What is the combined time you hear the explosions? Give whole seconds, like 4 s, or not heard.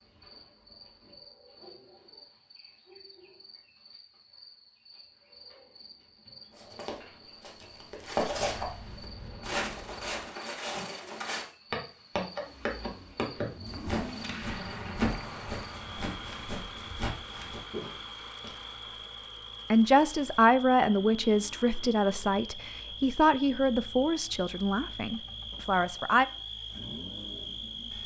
4 s.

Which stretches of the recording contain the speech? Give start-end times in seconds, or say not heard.
19.7-26.2.